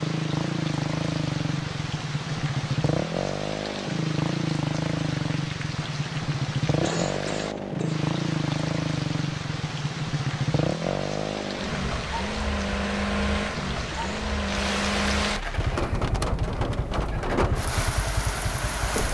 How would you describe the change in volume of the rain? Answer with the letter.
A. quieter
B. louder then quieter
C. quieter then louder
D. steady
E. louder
E.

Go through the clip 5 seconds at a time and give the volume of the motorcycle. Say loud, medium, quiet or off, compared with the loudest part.
loud, loud, loud, medium.